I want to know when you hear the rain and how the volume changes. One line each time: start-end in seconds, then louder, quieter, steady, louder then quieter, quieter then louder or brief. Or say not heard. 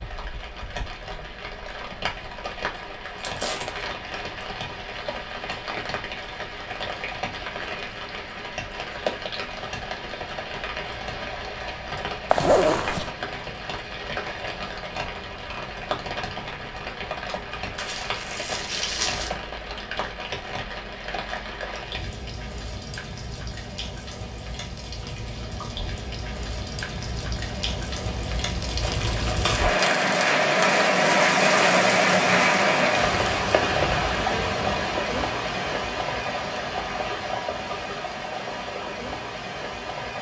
0.0-40.1 louder.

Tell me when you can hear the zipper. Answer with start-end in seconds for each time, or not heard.
12.3-13.1.